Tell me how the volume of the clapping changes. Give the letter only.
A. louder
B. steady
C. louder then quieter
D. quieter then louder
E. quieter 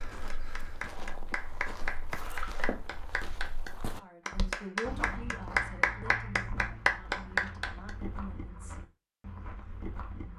A.